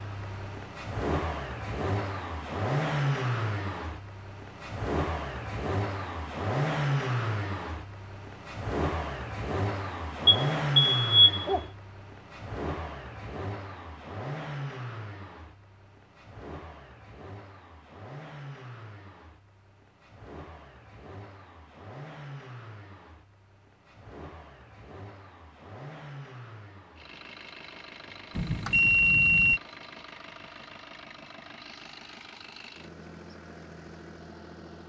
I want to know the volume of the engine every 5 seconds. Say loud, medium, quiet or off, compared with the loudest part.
loud, loud, loud, quiet, quiet, quiet, quiet.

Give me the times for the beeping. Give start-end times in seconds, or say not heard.
10.2-11.6, 28.4-29.6.